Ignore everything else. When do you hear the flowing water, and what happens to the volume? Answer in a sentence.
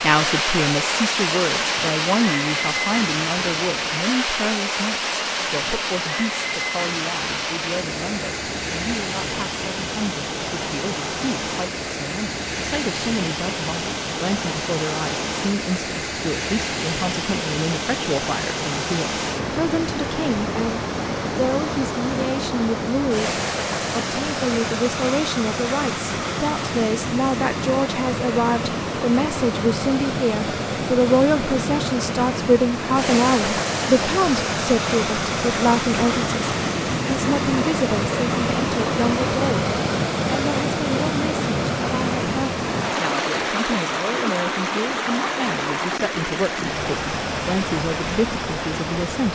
The flowing water can be heard from 0.0 to 49.2 s, at a steady volume.